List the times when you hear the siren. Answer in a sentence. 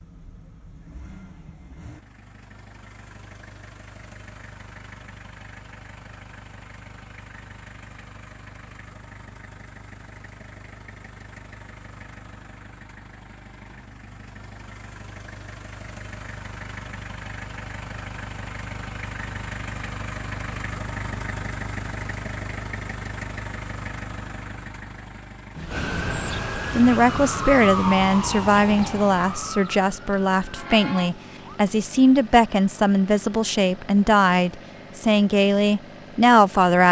You can hear the siren from 25.7 to 31.6 s.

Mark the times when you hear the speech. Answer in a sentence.
You can hear the speech from 26.7 to 36.8 s.